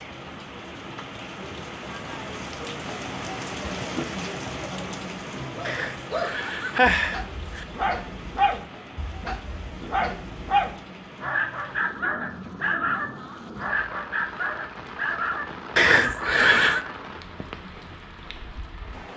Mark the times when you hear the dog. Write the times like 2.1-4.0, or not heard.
5.5-16.9.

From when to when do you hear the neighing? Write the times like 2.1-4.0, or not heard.
5.7-7.7, 15.8-16.8.